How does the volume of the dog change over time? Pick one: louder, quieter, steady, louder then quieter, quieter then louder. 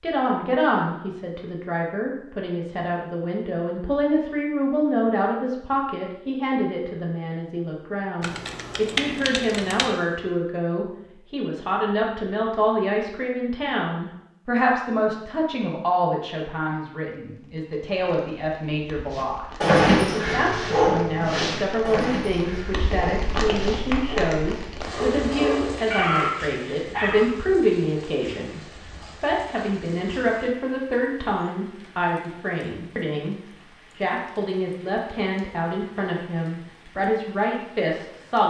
quieter then louder.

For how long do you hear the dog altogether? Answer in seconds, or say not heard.
8 s.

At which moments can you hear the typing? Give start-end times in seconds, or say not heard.
8.2-9.9.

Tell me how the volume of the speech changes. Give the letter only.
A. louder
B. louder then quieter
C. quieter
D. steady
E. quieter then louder
D.